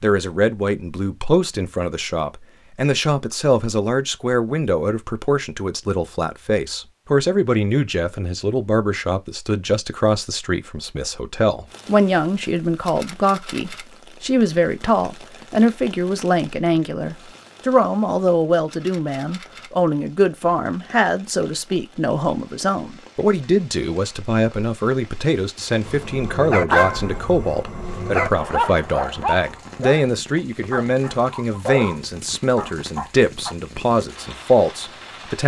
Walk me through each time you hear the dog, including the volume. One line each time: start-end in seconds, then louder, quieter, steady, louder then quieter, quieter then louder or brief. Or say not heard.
25.9-30.1 quieter then louder
30.7-33.5 brief.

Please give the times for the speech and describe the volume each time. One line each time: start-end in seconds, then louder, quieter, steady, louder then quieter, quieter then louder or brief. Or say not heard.
0.0-35.4 steady.